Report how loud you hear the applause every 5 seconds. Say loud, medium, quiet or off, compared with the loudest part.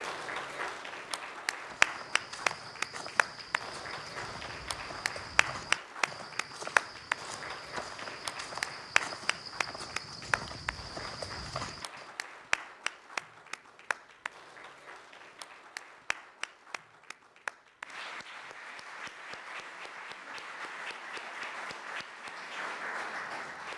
loud, loud, medium, medium, medium.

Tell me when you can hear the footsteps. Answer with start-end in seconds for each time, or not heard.
1.6-12.2.